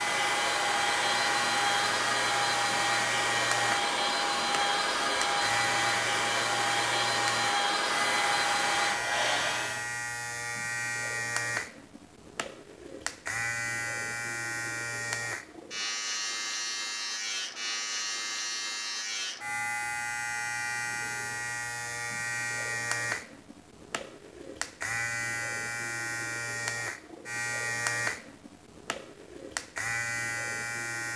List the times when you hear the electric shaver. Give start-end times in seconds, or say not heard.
0.0-31.1.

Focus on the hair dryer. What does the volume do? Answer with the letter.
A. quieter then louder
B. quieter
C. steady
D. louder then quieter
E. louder
C.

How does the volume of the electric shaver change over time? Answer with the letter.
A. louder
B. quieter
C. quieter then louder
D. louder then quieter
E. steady
E.